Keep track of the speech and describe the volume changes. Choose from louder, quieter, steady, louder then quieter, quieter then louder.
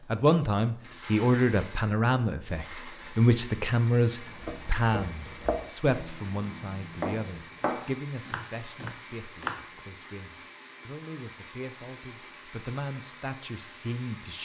quieter then louder.